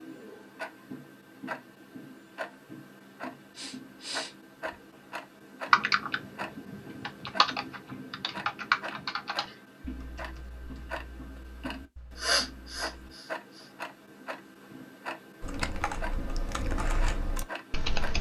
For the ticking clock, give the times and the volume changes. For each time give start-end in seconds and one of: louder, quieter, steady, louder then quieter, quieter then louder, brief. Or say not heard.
0.0-18.1 steady.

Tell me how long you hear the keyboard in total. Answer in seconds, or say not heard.
10 s.